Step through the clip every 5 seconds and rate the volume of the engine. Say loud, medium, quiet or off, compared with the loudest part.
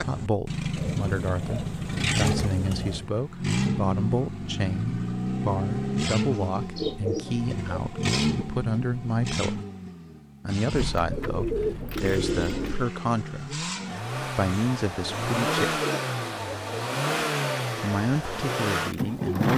loud, loud, medium, loud.